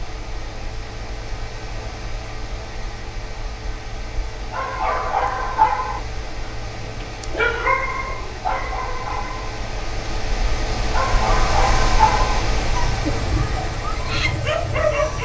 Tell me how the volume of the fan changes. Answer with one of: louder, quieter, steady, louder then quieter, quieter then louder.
louder.